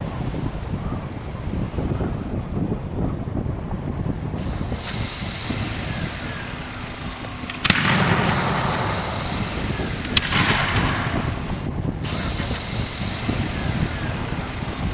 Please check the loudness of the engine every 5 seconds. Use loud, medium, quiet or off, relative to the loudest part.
medium, loud, loud.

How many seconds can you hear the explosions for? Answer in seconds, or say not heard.
4 s.